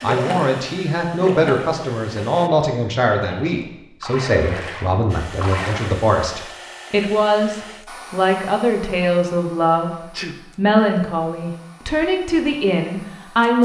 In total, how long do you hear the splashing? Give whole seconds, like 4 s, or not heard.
6 s.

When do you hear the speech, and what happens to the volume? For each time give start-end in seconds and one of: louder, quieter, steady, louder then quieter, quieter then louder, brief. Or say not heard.
0.0-13.5 steady.